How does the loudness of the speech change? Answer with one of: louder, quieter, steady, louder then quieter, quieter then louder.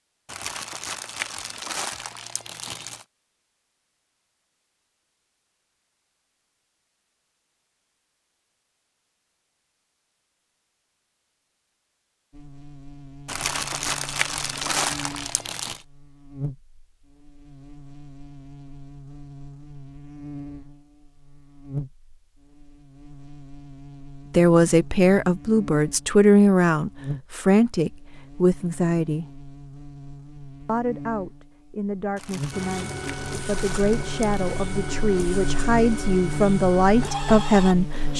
quieter then louder.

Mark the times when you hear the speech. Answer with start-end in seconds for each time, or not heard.
24.3-29.2, 30.6-38.1.